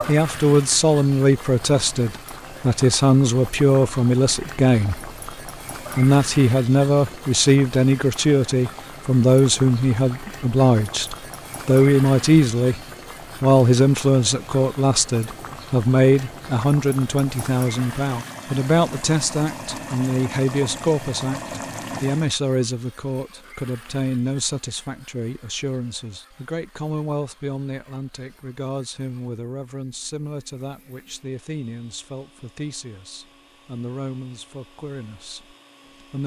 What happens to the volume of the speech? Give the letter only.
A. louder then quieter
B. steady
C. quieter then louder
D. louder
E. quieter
E.